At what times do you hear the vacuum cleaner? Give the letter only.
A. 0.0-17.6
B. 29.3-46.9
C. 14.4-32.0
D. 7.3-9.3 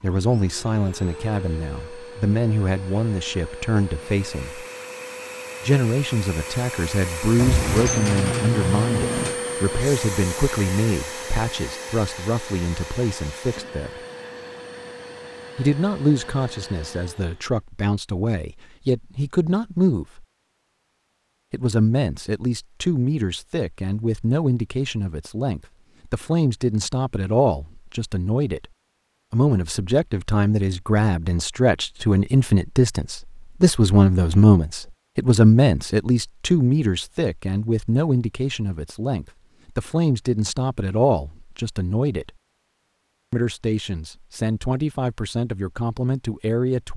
A.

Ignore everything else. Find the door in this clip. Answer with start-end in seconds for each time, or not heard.
7.3-9.3.